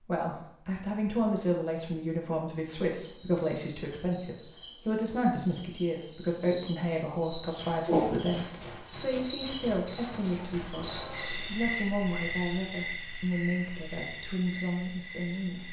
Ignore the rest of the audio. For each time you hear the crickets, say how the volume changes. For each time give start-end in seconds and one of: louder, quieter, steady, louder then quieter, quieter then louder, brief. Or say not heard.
3.0-15.6 louder then quieter.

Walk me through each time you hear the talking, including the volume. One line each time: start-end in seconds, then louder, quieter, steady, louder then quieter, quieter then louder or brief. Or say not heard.
0.1-15.6 steady.